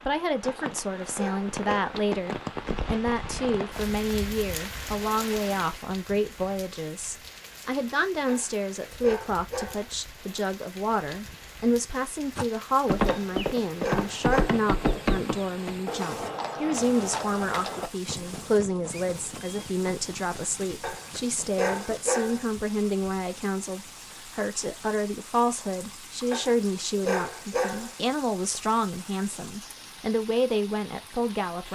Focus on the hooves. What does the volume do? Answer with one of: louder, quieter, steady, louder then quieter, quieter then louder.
quieter.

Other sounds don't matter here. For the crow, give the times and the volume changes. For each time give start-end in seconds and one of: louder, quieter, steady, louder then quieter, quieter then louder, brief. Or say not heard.
not heard.